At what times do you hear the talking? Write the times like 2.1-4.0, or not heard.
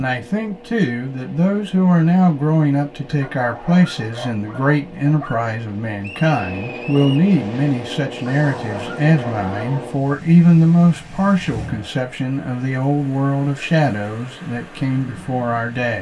0.0-15.9.